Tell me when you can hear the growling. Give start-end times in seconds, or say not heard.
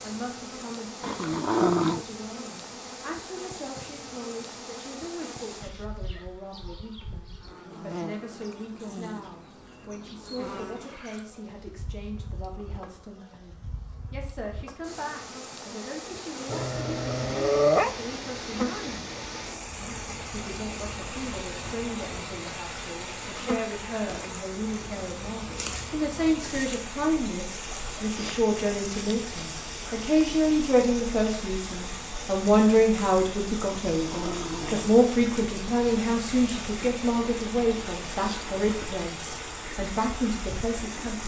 1.0-2.0, 16.5-17.9, 33.9-34.9.